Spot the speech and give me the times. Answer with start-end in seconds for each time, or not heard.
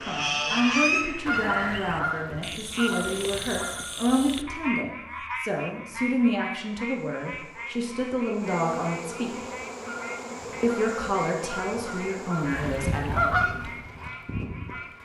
0.0-9.3, 10.6-13.3.